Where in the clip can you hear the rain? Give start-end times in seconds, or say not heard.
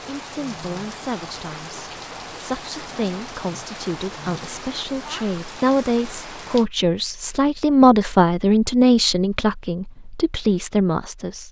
0.0-6.7.